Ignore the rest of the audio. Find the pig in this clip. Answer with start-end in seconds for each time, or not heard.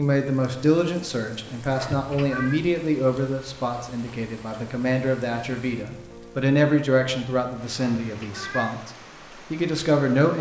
not heard.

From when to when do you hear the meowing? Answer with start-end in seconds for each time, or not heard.
1.8-2.6, 7.8-8.8.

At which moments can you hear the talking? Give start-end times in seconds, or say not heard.
0.0-8.9, 9.5-10.3.